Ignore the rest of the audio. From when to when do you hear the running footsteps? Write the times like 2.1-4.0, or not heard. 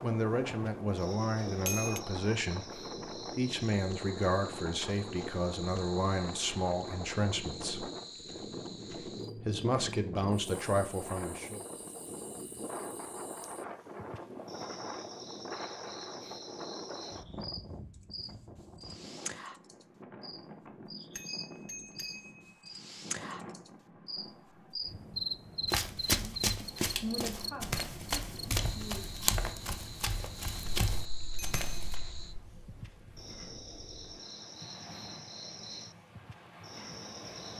25.6-31.9.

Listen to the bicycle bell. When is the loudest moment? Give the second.
2 s.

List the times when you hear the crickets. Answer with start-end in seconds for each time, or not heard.
0.0-37.5.